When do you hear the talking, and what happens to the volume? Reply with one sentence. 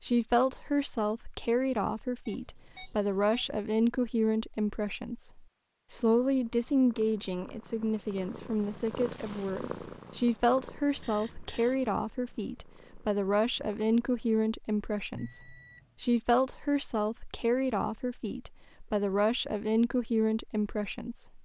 The talking can be heard from 0.0 to 21.4 s, at a steady volume.